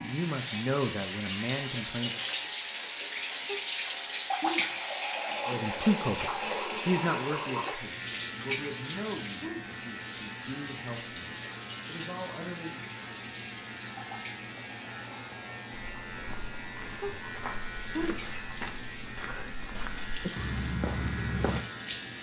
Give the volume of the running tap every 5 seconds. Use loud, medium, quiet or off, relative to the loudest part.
loud, loud, medium, quiet, medium.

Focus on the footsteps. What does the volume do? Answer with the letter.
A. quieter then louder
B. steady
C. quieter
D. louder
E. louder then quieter
D.